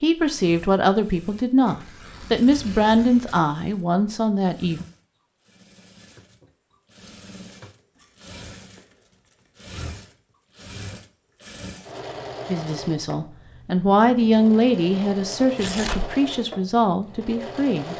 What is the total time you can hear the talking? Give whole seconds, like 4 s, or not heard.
10 s.